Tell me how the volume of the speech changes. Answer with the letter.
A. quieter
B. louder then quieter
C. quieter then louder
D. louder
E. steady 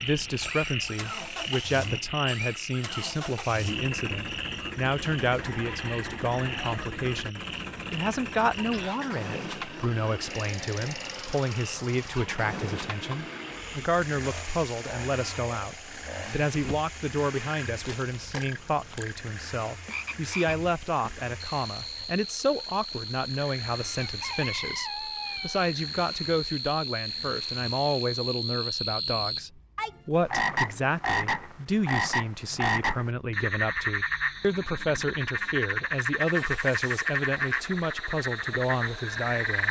E.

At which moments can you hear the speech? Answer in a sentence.
You can hear the speech from 0.0 to 39.6 s.